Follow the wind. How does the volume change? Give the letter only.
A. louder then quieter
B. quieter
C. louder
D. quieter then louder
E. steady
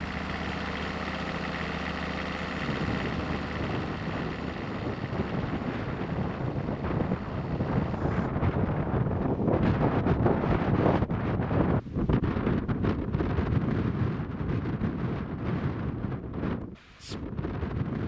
A.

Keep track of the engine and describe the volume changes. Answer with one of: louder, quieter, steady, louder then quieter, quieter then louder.
quieter.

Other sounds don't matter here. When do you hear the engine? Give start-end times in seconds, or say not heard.
0.0-8.3.